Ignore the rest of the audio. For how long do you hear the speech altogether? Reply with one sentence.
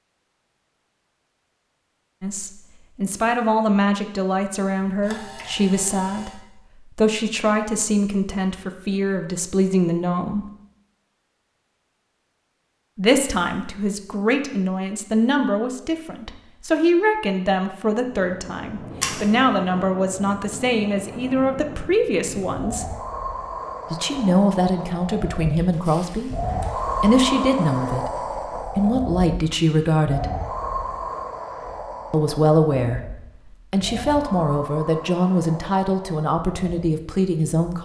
The speech can be heard for 29 seconds in total.